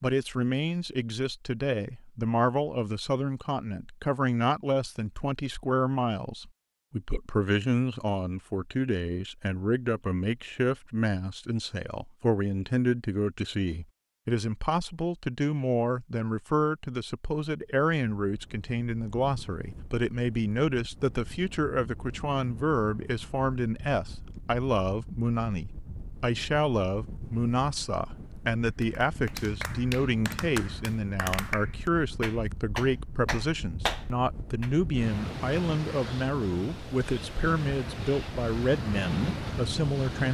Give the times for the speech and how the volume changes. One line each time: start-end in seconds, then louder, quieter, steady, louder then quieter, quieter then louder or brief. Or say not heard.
0.0-40.2 steady.